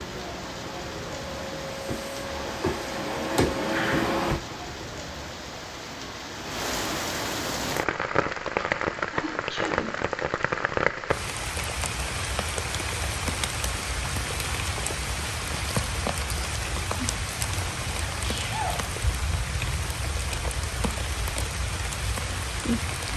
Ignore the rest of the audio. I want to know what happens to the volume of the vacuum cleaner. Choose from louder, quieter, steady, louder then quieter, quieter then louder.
louder.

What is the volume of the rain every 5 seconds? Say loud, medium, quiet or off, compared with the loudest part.
medium, loud, loud, loud, loud.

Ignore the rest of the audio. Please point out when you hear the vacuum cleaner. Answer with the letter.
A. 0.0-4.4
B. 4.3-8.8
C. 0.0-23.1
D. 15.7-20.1
A.